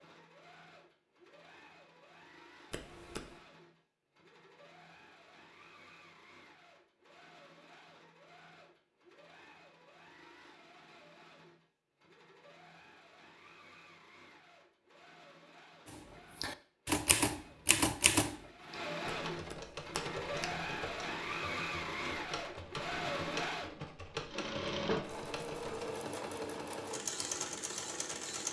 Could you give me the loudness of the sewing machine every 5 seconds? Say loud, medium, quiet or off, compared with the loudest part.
quiet, quiet, quiet, medium, loud, loud.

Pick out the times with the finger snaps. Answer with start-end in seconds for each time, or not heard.
2.7-3.4, 19.3-20.6.